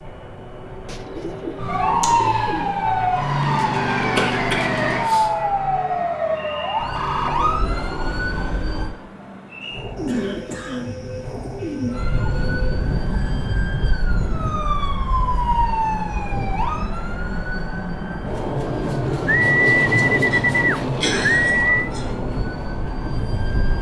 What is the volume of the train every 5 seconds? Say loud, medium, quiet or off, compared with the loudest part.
medium, medium, medium, loud, loud.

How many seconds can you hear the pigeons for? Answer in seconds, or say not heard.
7 s.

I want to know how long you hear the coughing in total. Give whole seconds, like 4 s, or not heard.
4 s.